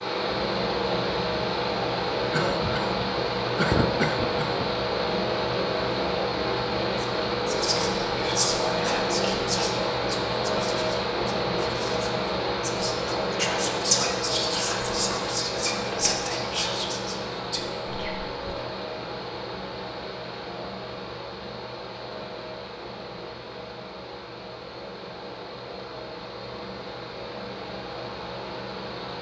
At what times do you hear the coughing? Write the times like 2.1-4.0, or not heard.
2.3-4.7.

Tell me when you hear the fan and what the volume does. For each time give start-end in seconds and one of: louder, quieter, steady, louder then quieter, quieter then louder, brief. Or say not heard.
0.0-29.1 quieter.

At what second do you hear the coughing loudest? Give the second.
4 s.